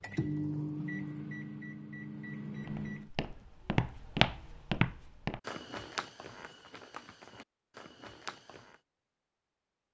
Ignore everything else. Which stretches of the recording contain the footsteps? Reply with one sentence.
You can hear the footsteps from 2.6 to 8.8 s.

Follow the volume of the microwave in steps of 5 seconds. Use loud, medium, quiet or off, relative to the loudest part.
loud, off.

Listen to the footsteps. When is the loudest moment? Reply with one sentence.
The loudest moment of the footsteps is at 4 seconds.